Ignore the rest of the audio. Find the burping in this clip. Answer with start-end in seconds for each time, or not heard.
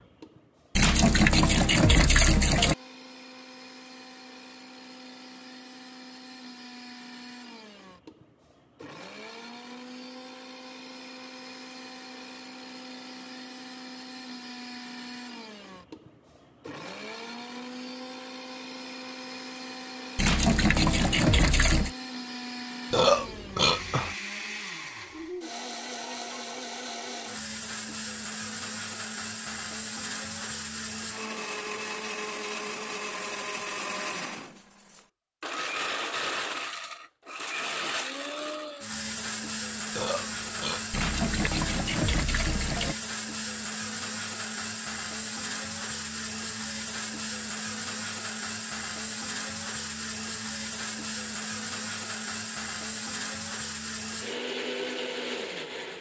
22.9-24.1, 39.9-41.5.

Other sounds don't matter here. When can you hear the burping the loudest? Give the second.
23 s.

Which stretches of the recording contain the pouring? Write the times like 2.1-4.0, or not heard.
0.8-2.8, 20.1-21.9, 40.9-43.0.